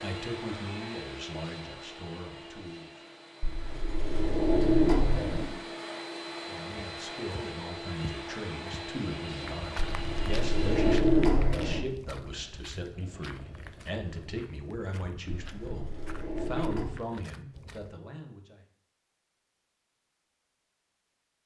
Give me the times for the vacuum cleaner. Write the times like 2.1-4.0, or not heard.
0.0-11.1.